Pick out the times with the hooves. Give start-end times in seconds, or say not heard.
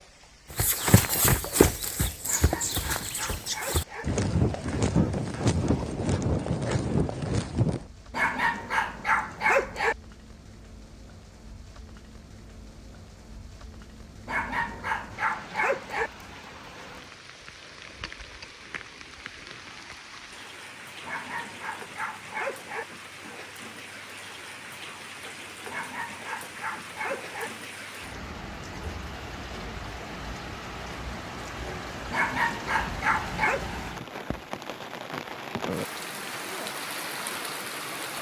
0.5-7.8.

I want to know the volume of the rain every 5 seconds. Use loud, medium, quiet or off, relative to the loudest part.
quiet, quiet, quiet, medium, medium, medium, loud, loud.